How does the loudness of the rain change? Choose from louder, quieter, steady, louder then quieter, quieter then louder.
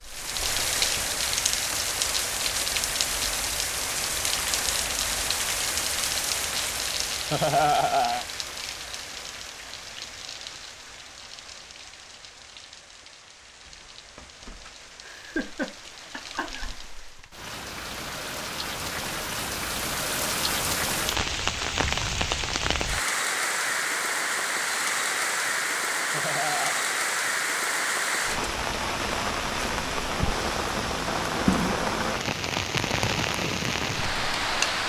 quieter then louder.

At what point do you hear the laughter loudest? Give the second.
8 s.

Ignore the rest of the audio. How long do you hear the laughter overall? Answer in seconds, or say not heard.
3 s.